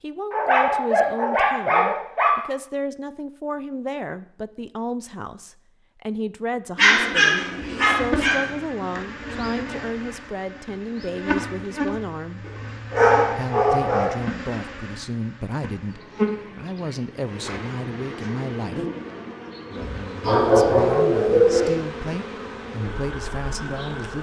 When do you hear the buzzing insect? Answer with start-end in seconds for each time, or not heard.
7.4-24.1.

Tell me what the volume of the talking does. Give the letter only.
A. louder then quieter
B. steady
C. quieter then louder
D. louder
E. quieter
B.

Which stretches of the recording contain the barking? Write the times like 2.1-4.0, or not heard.
0.3-2.3, 6.8-8.5, 12.4-14.1, 20.2-21.8.